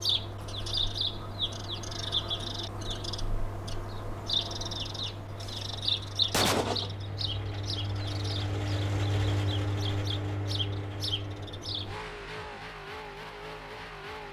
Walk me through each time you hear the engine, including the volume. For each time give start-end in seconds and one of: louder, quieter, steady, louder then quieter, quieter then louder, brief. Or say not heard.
0.0-14.2 louder then quieter.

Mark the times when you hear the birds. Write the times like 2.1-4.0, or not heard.
0.0-12.0.